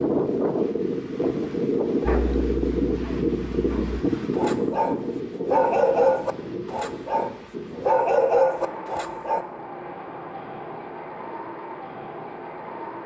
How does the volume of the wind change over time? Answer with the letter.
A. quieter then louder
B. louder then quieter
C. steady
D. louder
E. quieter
E.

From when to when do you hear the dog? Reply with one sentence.
You can hear the dog from 2.0 to 9.4 s.